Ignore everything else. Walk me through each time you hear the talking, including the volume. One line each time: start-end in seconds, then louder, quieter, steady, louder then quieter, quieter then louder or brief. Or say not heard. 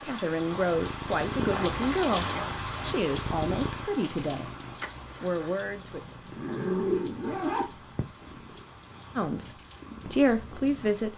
0.0-4.5 steady
5.2-6.0 brief
9.2-11.1 brief.